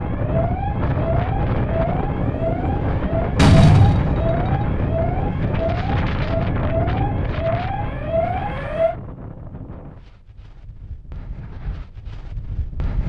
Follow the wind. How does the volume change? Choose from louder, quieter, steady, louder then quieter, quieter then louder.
quieter.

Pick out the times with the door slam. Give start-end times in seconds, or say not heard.
3.4-4.6.